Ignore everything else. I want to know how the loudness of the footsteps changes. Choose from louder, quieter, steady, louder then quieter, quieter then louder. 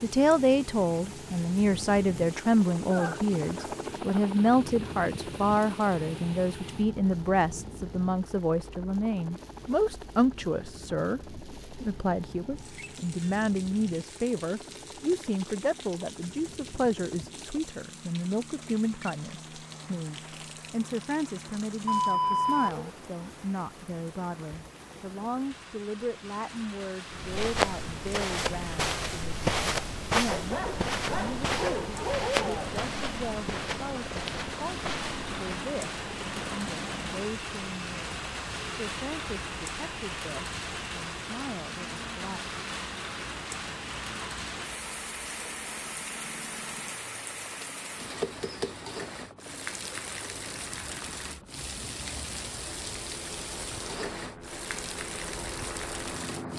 quieter.